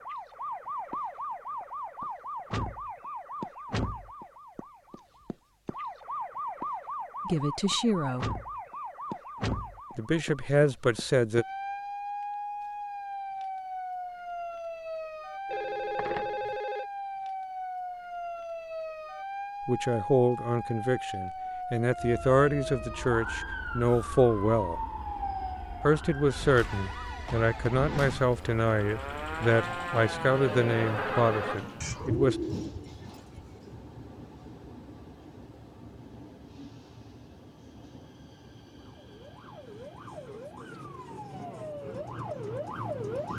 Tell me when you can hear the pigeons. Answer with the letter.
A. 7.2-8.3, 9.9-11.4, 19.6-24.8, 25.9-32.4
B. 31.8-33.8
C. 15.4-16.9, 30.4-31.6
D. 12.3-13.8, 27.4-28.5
B.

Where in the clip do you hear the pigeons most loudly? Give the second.
32 s.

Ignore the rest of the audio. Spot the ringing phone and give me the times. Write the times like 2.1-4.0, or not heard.
15.4-16.9, 30.4-31.6.